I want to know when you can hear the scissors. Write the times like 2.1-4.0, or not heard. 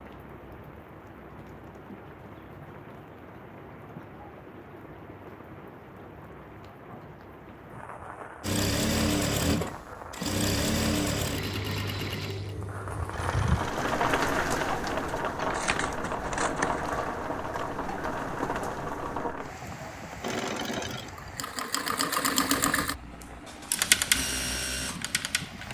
15.4-16.9.